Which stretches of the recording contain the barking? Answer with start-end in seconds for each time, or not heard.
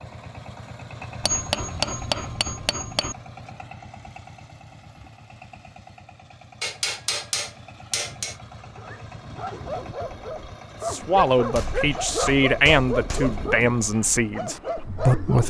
8.8-15.4.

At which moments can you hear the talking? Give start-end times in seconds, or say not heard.
10.8-15.4.